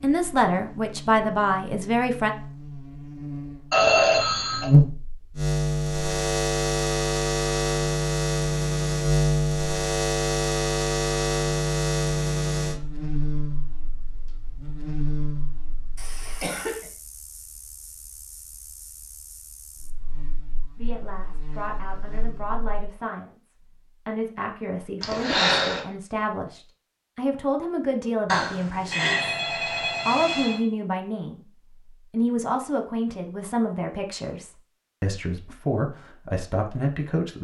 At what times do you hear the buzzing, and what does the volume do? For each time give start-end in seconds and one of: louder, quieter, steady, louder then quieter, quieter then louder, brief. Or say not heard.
0.0-22.9 quieter.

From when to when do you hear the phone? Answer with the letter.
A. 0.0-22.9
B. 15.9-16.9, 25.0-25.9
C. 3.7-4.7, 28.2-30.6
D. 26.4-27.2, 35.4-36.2
C.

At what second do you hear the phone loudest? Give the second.
4 s.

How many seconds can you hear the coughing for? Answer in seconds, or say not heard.
2 s.